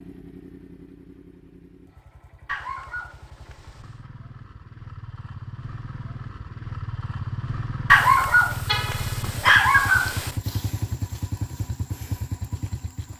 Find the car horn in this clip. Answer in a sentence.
You can hear the car horn from 8.7 to 9.3 s.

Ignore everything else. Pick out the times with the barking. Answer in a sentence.
The barking can be heard from 2.5 to 3.9 s and from 7.9 to 10.3 s.